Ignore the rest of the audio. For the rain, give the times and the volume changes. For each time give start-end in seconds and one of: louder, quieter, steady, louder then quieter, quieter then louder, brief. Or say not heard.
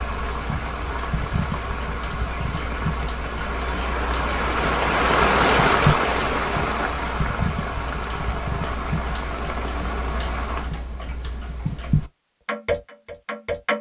0.0-10.7 louder then quieter.